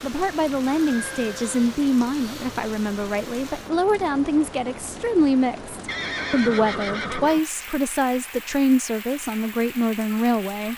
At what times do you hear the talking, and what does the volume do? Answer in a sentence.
The talking can be heard from 0.0 to 10.7 s, at a steady volume.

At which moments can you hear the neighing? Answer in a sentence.
The neighing can be heard from 0.8 to 1.8 s and from 5.8 to 7.4 s.